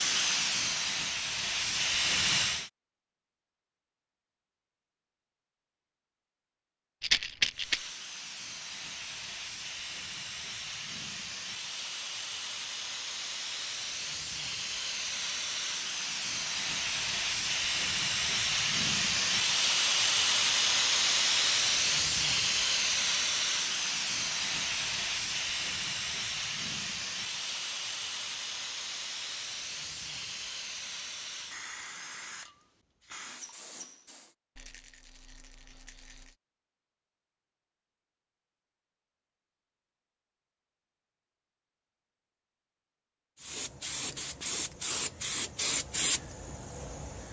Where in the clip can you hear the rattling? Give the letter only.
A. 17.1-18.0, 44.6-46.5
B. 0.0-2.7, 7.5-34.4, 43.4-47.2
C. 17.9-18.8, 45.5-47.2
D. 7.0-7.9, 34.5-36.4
D.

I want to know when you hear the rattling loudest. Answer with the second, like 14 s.
7 s.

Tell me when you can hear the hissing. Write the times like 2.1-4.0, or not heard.
0.0-2.7, 7.5-34.4, 43.4-47.2.